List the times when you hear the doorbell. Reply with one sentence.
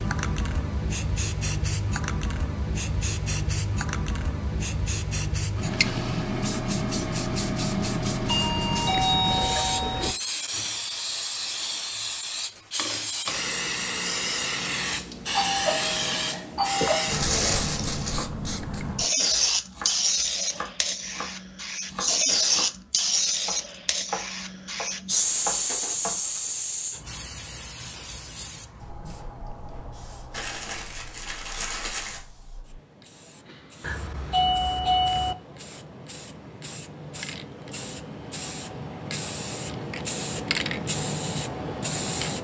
You can hear the doorbell from 8.2 to 10.2 s, from 14.9 to 17.1 s and from 33.8 to 35.4 s.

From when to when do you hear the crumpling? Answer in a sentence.
You can hear the crumpling from 17.1 to 18.2 s and from 30.3 to 32.2 s.